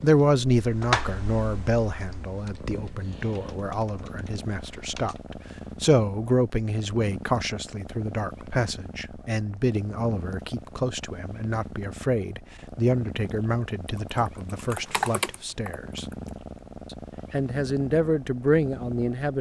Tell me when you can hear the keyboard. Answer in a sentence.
The keyboard can be heard from 0.0 to 5.2 s and from 14.1 to 16.4 s.